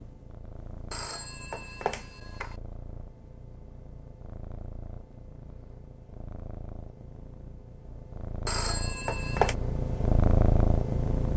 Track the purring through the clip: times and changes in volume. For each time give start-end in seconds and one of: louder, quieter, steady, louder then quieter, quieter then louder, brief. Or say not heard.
0.0-11.3 louder.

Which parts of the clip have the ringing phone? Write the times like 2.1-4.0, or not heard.
0.9-2.5, 8.4-9.6.